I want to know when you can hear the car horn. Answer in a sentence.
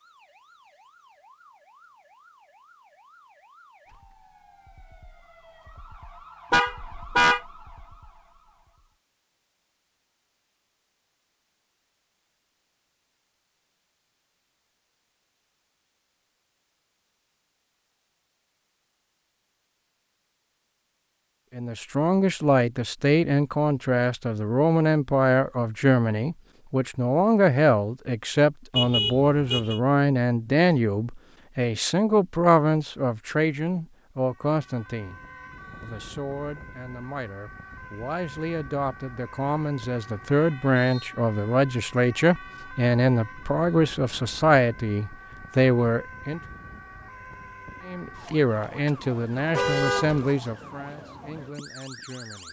The car horn can be heard from 6.5 to 7.4 s, from 28.8 to 29.8 s and from 49.5 to 50.4 s.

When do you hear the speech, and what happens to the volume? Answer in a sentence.
You can hear the speech from 21.6 to 35.2 s, at a steady volume; from 35.8 to 46.4 s, getting louder; and from 47.9 to 52.4 s, getting quieter.